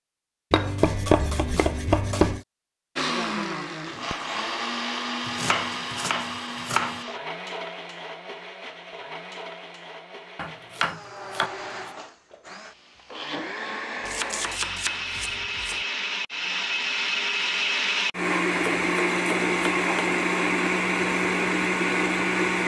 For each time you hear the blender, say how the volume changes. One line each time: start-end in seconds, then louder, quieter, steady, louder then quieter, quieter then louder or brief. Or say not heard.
3.0-22.6 quieter then louder.